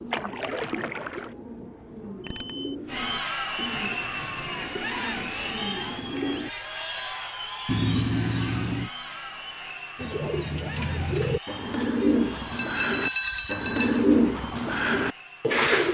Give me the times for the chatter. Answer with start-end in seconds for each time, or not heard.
2.9-15.7.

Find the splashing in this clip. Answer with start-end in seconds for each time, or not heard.
0.1-1.4.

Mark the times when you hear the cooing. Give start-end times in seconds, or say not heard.
0.0-6.5, 9.9-15.8.